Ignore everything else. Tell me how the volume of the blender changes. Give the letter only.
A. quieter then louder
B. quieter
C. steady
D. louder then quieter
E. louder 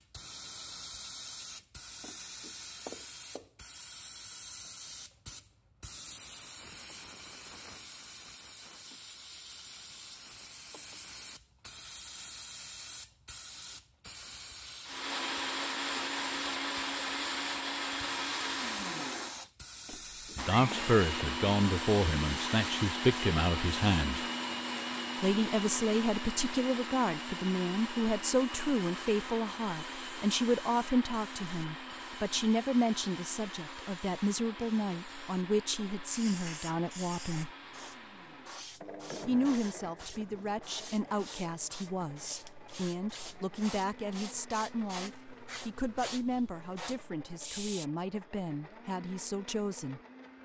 B.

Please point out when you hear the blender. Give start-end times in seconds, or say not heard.
14.8-50.4.